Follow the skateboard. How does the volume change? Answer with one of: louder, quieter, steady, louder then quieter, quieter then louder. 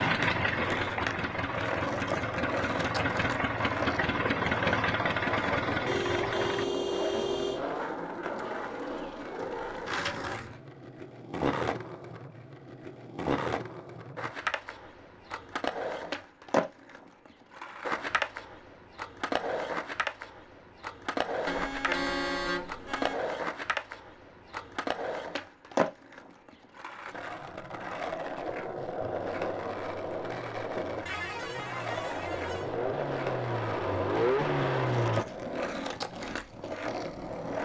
steady.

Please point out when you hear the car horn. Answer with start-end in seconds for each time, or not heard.
5.8-7.7, 21.4-23.1, 31.1-32.7.